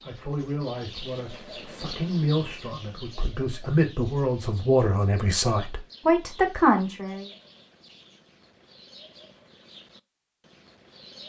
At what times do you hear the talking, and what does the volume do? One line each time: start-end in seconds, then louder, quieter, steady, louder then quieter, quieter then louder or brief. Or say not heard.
0.1-7.3 louder.